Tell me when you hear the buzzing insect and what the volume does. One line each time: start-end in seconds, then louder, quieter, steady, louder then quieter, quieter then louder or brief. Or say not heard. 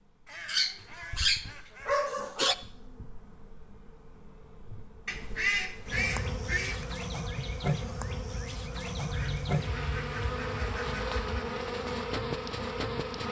0.0-13.2 louder.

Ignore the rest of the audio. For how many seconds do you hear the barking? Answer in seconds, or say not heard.
2 s.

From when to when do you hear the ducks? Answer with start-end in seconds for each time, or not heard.
0.2-2.0, 5.0-6.8, 8.9-11.4.